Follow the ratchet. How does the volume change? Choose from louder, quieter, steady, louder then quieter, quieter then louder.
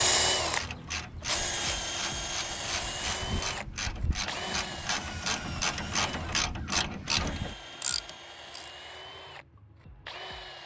louder.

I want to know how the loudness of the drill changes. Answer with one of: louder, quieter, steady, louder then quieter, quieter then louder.
quieter.